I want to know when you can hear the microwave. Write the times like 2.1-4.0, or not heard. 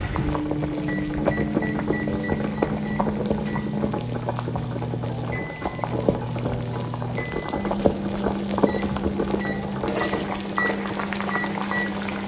0.0-12.2.